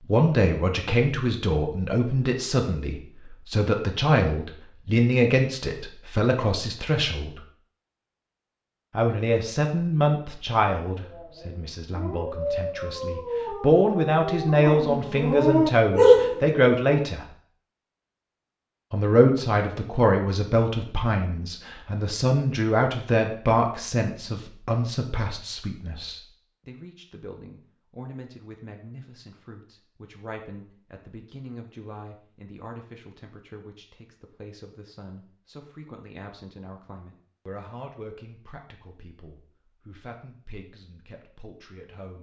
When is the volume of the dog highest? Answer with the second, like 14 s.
16 s.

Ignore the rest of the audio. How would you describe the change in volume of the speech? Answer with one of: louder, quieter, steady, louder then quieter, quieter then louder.
quieter.